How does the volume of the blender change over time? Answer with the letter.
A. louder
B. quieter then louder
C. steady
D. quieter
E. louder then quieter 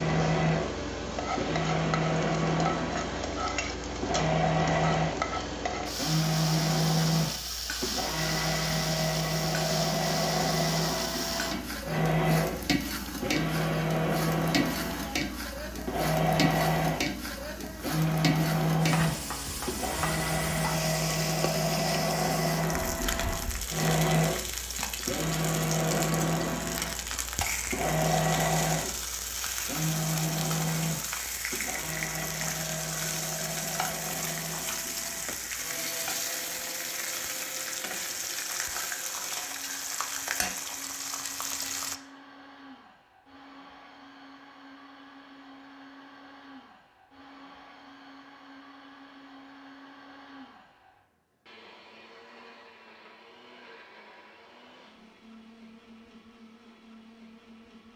D.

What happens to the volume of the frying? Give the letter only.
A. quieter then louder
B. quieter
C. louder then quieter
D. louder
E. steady
E.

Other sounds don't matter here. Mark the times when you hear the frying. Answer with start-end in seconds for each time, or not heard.
0.0-42.0.